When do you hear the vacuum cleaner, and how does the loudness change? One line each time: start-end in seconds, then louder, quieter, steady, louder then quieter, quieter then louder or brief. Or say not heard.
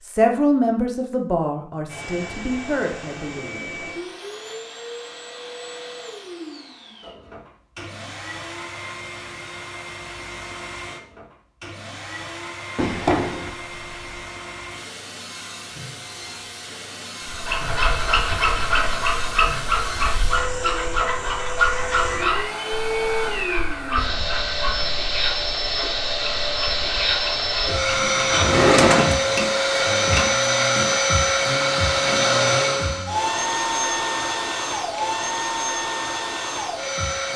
1.9-37.3 louder.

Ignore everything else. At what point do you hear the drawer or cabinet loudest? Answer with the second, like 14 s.
29 s.